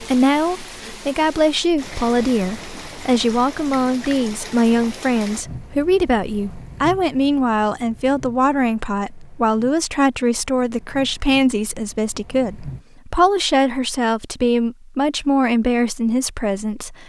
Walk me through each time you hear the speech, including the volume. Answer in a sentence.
You can hear the speech from 0.0 to 17.0 s, at a steady volume.